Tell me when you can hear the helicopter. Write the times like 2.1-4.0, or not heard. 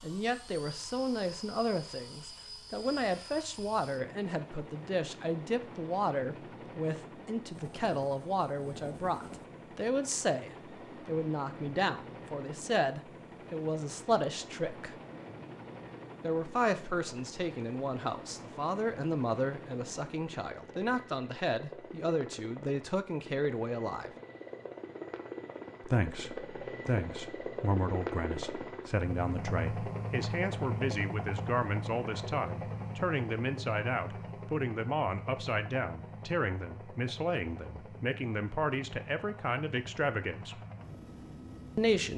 0.0-42.1.